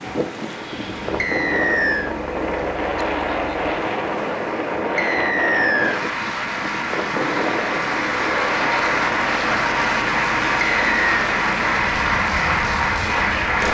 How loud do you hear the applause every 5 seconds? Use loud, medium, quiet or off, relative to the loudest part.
quiet, loud, loud.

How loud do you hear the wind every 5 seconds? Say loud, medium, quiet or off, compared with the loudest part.
loud, loud, medium.